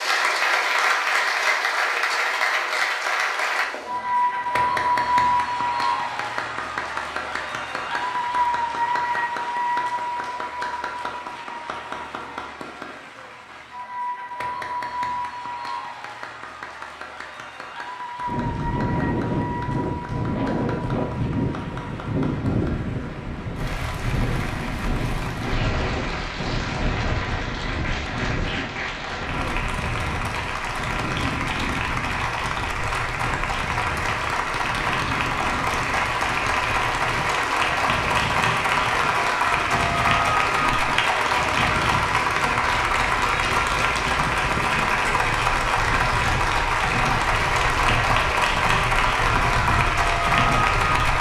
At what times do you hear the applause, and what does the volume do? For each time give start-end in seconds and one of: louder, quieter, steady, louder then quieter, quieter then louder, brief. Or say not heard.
0.0-51.1 quieter then louder.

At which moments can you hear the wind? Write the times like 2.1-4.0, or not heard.
18.2-51.1.